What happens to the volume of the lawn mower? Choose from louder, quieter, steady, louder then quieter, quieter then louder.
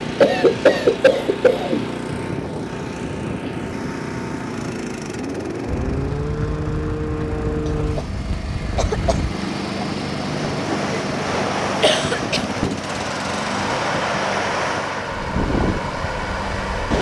steady.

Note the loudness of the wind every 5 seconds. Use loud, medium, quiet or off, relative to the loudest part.
off, medium, loud, loud.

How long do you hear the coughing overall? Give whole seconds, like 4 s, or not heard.
4 s.